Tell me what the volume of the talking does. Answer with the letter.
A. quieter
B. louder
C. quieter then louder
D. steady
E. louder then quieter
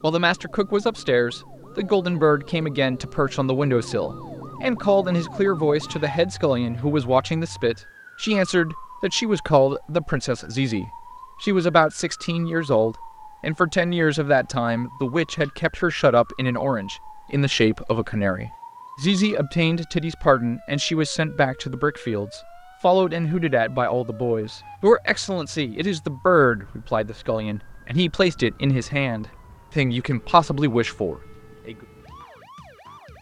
D.